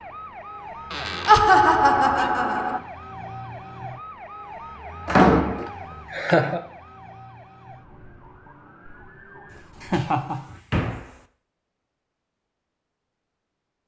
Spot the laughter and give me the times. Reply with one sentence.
The laughter can be heard from 1.2 to 2.8 s, from 5.7 to 6.6 s and from 9.8 to 10.4 s.